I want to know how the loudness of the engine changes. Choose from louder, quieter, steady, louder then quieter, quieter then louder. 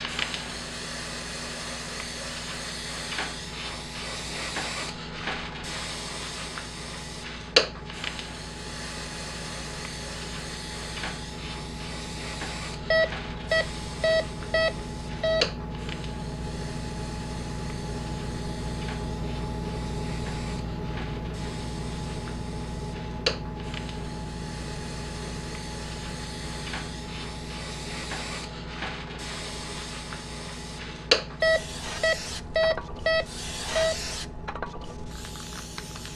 louder then quieter.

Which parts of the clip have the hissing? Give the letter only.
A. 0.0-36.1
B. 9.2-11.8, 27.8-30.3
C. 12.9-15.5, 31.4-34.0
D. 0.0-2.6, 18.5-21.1
A.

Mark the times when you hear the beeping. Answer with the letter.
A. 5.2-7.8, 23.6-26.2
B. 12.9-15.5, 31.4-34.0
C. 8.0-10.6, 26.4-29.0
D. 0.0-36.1
B.